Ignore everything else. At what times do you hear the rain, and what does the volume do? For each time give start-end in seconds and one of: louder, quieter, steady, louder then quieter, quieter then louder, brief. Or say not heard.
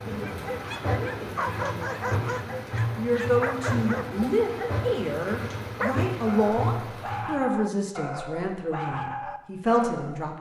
0.0-7.3 steady.